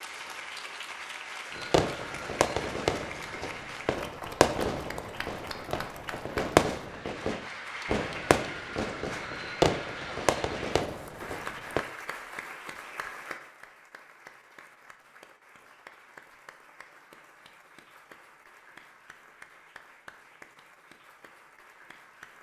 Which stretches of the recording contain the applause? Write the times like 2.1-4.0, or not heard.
0.0-22.3.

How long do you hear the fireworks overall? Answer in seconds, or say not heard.
10 s.